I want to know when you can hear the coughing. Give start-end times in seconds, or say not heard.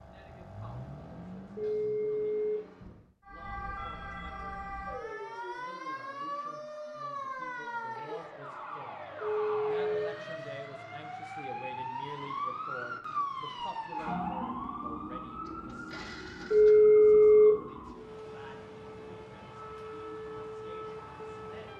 not heard.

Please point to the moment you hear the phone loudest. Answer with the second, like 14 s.
17 s.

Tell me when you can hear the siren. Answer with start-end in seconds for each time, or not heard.
3.2-21.7.